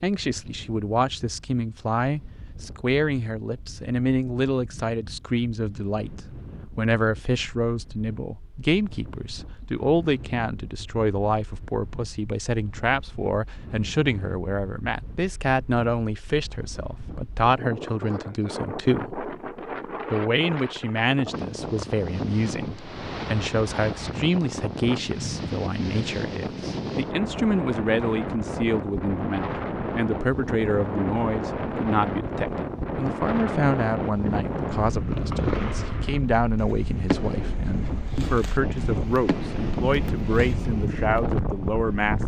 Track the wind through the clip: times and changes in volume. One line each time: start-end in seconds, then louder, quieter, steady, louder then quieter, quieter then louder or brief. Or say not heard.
0.0-42.2 louder.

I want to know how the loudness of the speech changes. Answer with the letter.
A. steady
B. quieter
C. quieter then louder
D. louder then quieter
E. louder
A.